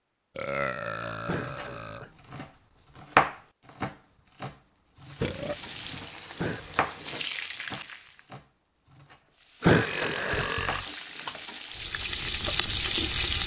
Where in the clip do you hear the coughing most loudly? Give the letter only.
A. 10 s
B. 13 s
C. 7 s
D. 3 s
A.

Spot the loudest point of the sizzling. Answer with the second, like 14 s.
13 s.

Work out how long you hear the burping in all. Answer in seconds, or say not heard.
4 s.